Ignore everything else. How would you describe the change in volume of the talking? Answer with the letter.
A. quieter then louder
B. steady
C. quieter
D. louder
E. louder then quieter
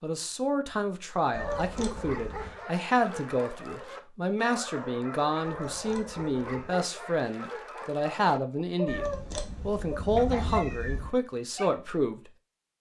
B.